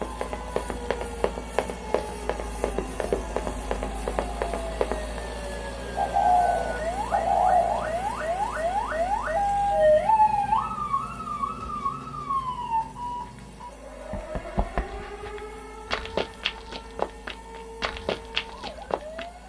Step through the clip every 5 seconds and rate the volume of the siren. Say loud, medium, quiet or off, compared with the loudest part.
quiet, loud, loud, quiet.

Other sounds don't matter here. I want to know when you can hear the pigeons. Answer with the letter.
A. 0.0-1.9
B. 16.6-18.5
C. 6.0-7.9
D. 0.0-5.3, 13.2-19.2
C.